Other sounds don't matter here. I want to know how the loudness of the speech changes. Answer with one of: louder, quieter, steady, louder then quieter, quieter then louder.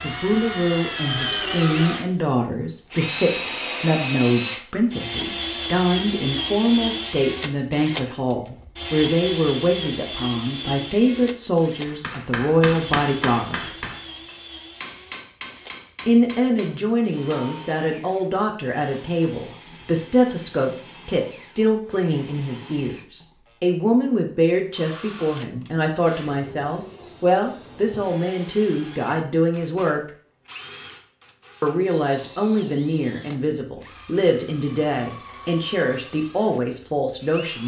steady.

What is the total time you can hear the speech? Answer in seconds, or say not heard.
34 s.